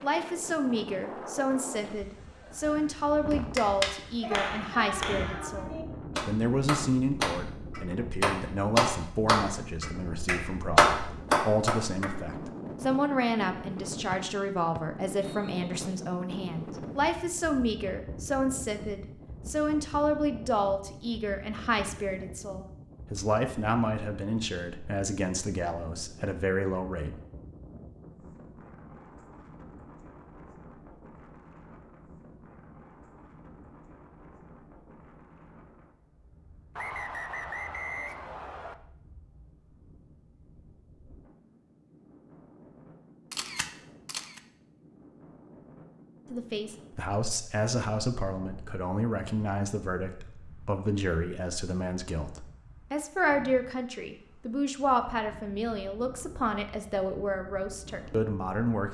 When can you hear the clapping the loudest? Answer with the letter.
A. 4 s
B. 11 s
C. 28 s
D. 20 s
B.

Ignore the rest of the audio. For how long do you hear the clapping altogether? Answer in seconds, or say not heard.
9 s.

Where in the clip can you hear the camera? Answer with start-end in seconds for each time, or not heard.
43.3-44.4.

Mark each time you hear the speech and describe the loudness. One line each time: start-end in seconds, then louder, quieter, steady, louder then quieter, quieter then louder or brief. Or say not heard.
0.0-27.1 steady
46.3-58.8 steady.